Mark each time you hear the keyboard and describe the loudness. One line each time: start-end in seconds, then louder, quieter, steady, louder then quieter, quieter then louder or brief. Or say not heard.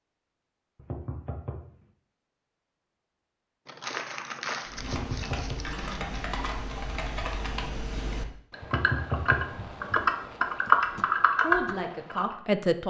4.7-12.3 louder.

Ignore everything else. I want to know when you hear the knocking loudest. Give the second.
9 s.